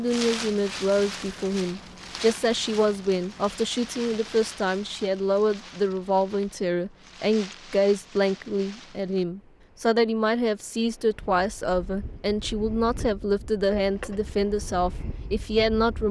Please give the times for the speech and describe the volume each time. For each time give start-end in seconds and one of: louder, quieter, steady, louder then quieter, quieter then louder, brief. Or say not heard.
0.0-16.0 steady.